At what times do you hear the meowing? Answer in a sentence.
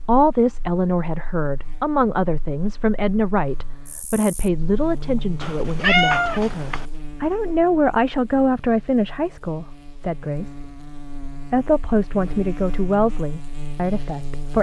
The meowing can be heard from 5.4 to 6.8 s.